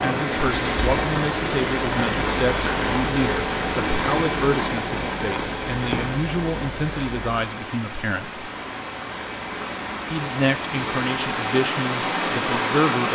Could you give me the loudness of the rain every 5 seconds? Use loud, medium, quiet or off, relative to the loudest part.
loud, medium, loud.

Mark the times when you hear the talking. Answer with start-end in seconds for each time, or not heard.
0.0-8.4, 10.1-13.1.